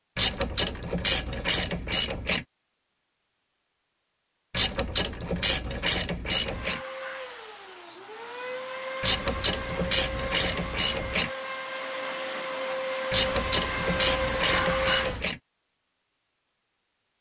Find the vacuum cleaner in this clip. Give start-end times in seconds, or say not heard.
6.3-15.2.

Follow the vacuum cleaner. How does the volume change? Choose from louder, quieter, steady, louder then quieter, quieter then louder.
louder.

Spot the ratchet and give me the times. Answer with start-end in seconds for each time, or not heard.
0.1-2.5, 4.5-6.8, 9.0-11.3, 13.1-15.3.